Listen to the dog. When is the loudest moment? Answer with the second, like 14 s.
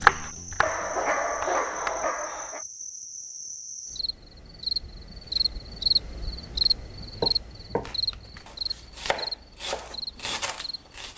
1 s.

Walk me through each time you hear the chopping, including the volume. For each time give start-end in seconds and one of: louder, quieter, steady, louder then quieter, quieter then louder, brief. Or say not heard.
0.0-2.1 brief
7.0-11.1 quieter then louder.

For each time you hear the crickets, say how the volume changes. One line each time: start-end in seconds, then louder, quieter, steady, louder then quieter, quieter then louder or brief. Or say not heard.
0.0-11.1 louder then quieter.